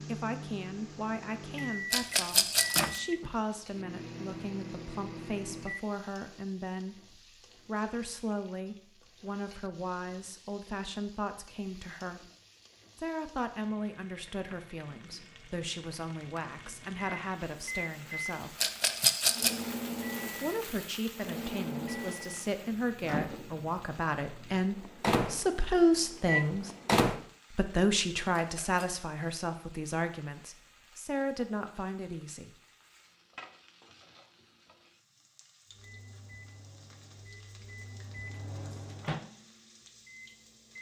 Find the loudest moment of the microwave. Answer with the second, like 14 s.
27 s.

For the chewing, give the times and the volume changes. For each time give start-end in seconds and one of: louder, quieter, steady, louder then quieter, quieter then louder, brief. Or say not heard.
not heard.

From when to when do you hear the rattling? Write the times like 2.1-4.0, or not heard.
1.9-3.0, 18.6-19.5, 28.3-28.9.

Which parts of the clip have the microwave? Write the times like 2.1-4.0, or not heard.
0.0-6.0, 16.6-27.2, 35.7-40.7.